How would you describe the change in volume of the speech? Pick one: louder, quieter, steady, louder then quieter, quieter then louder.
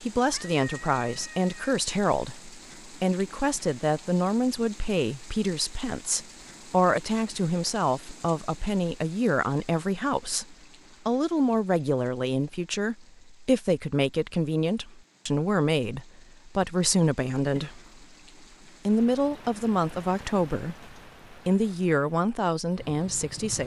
steady.